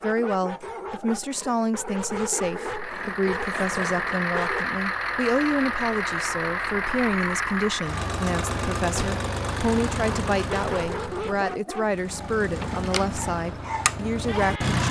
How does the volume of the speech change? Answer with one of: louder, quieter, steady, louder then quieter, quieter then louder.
steady.